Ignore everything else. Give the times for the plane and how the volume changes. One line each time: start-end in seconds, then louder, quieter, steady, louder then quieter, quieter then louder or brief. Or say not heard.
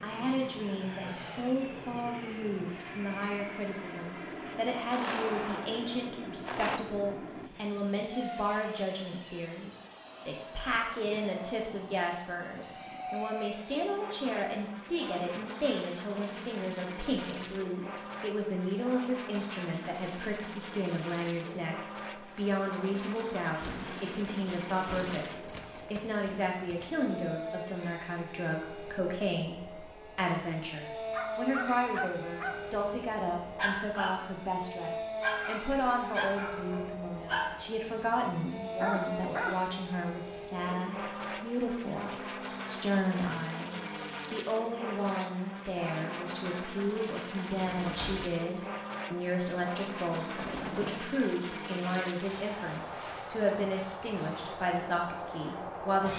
0.0-56.1 steady.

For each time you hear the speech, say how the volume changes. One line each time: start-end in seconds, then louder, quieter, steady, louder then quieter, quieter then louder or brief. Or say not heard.
0.0-56.1 steady.